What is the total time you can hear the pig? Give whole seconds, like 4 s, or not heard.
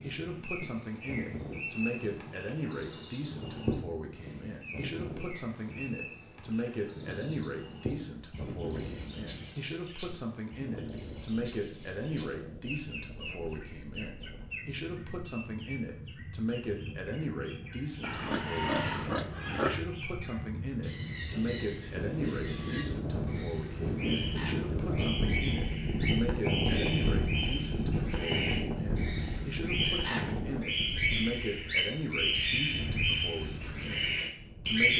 2 s.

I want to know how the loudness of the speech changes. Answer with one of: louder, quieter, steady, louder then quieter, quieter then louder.
steady.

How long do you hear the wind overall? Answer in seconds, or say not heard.
35 s.